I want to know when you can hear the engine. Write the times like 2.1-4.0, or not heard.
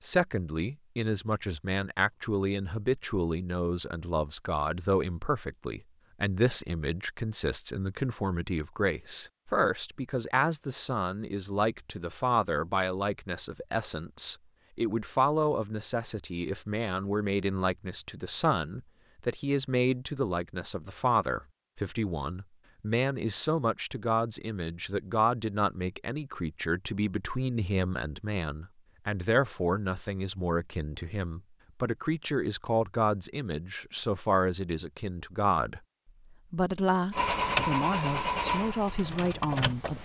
37.1-39.9.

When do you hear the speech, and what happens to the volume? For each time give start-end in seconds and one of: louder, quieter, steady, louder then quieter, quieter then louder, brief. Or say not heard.
0.0-39.9 steady.